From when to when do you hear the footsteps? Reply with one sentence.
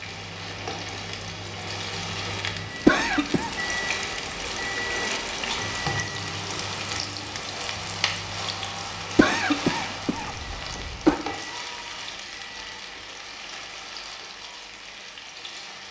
The footsteps can't be heard in this clip.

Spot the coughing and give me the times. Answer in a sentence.
The coughing can be heard from 2.9 to 3.5 s and from 9.2 to 11.2 s.